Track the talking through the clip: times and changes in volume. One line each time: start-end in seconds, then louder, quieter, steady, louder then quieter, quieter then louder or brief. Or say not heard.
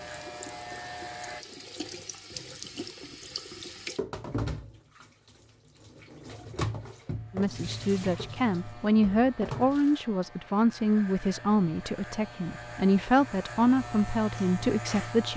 7.3-15.3 steady.